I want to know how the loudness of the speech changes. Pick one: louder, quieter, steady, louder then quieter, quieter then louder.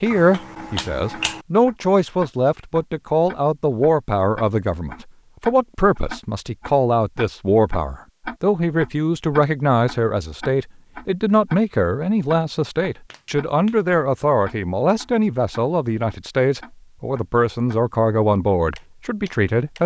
steady.